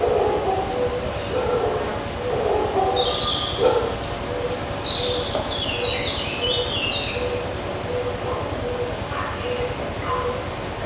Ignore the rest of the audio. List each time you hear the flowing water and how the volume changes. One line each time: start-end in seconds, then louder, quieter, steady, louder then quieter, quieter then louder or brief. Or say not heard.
0.0-10.8 steady.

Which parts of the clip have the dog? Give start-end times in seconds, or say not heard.
0.0-3.9, 8.2-10.8.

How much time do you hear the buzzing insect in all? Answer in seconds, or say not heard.
11 s.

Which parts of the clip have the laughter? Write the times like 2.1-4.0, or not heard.
not heard.